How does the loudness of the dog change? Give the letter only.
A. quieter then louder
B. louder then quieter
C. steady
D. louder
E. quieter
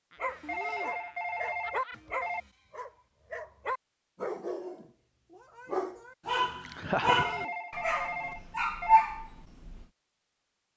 D.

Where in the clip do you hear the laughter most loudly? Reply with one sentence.
The loudest moment of the laughter is at 7 seconds.